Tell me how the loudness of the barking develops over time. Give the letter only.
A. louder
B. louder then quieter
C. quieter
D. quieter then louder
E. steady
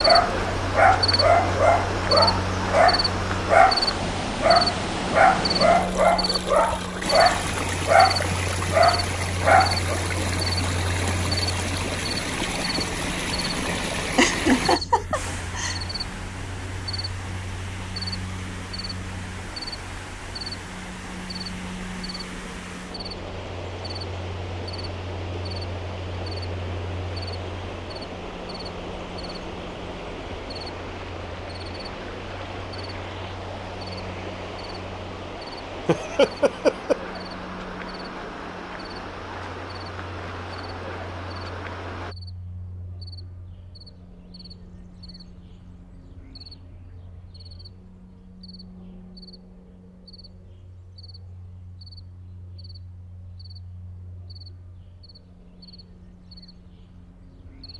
E.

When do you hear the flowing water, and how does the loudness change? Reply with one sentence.
You can hear the flowing water from 0.0 to 42.1 s, getting quieter.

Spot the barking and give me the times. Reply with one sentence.
The barking can be heard from 0.0 to 9.9 s.